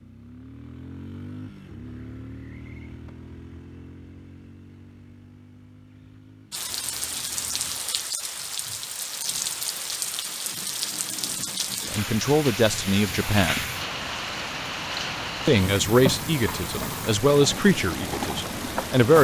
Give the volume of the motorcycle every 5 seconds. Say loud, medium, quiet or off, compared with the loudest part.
loud, medium, off, off.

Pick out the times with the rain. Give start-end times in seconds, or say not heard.
6.5-19.1.